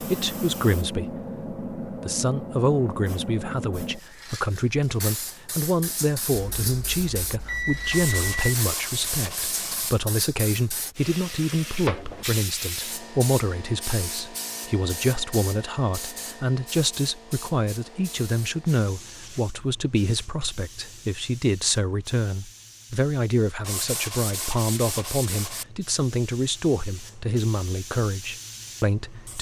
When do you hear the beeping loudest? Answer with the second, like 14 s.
8 s.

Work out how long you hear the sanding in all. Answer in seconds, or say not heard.
4 s.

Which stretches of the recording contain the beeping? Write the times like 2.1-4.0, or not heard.
6.3-8.6.